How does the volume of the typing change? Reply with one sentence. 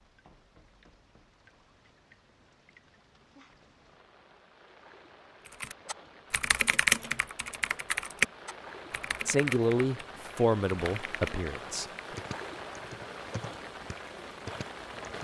The volume of the typing goes down.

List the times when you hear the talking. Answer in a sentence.
The talking can be heard from 9.2 to 12.2 s.